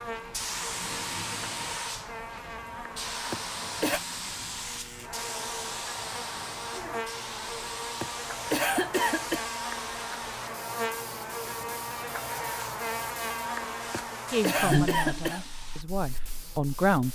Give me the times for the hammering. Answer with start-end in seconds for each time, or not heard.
not heard.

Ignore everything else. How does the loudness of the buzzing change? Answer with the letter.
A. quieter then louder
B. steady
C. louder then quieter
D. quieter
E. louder
E.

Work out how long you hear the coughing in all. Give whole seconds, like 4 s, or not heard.
4 s.